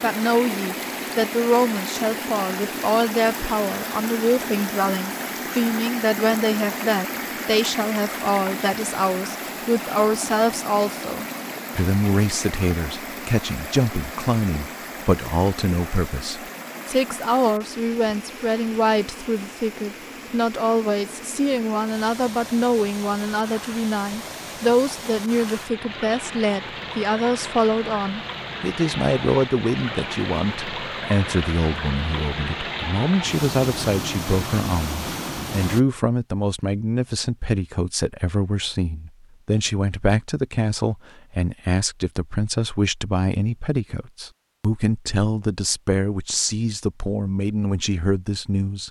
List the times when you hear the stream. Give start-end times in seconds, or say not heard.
0.0-35.8.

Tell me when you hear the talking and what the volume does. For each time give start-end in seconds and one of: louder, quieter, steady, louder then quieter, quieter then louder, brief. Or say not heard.
0.0-48.8 steady.